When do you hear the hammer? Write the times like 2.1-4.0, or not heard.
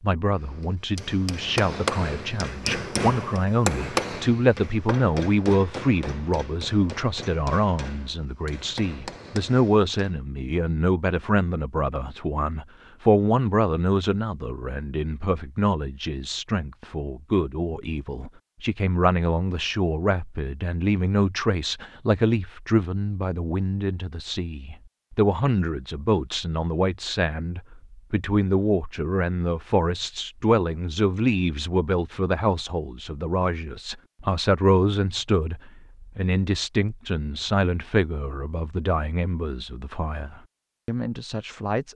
0.4-9.9.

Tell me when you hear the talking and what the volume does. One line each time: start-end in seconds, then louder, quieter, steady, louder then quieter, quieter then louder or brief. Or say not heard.
0.0-41.9 steady.